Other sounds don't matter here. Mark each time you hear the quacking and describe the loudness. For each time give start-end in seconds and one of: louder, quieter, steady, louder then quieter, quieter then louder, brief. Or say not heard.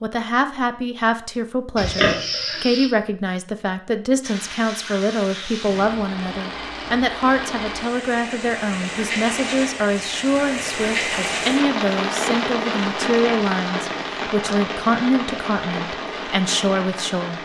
not heard.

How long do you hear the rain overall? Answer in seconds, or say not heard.
13 s.